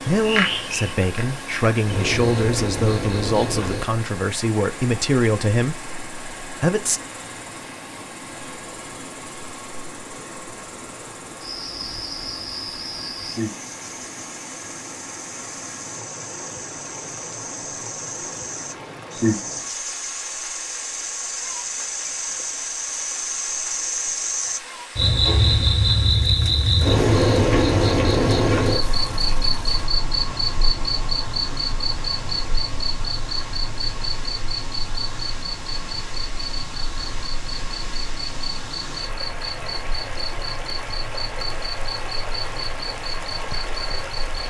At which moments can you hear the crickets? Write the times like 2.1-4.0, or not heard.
0.1-44.4.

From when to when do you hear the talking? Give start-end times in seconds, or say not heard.
0.1-7.0.